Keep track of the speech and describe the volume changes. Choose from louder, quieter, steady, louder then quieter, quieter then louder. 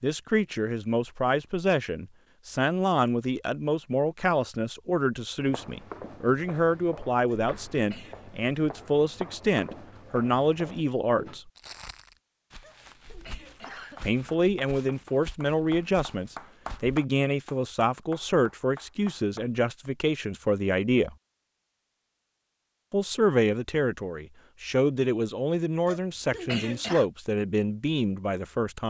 steady.